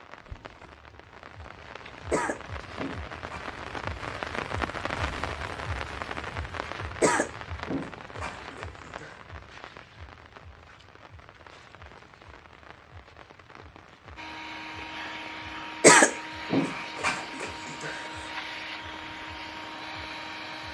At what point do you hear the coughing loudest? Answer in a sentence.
The volume of the coughing peaks at 16 seconds.